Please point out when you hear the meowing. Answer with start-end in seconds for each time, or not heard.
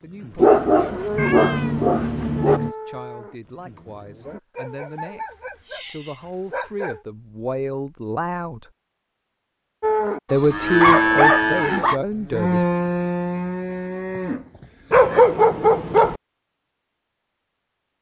1.1-2.8.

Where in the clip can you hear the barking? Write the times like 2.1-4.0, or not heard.
0.3-2.6, 4.5-7.0, 10.3-12.0, 14.9-16.2.